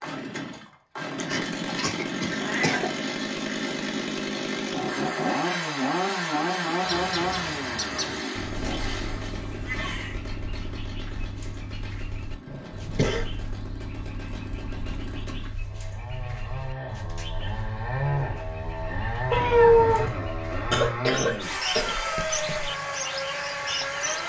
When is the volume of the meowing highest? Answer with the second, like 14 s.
20 s.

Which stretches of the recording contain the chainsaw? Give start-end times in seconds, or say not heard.
0.0-24.2.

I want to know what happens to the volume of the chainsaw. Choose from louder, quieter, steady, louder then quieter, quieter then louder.
quieter then louder.